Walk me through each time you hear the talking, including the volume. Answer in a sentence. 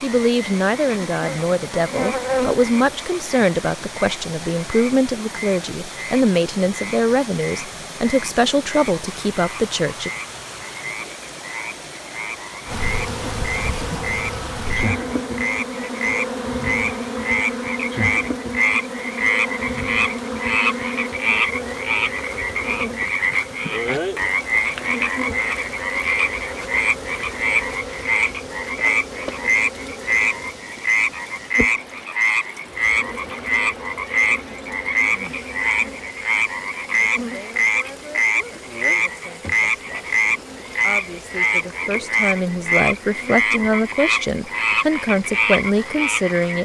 You can hear the talking from 0.0 to 10.1 s, at a steady volume; and from 37.2 to 46.6 s, getting louder.